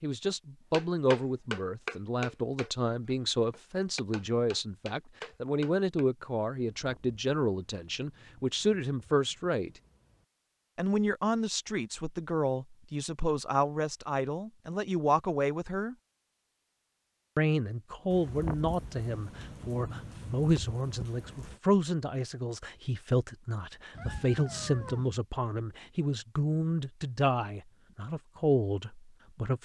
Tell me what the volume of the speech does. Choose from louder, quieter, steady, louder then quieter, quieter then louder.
steady.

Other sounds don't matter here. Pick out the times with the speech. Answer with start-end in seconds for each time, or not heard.
0.0-9.7, 10.8-15.9, 17.4-29.6.